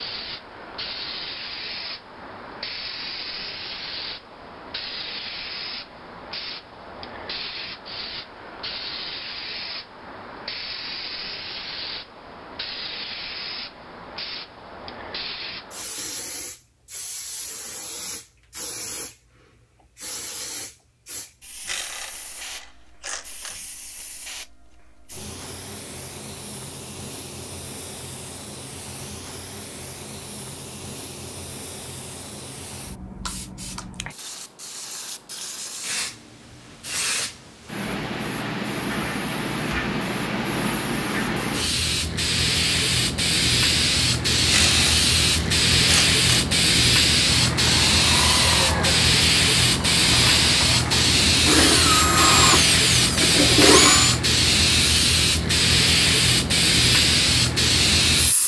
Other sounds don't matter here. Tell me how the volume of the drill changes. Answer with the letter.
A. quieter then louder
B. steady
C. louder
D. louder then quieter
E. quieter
A.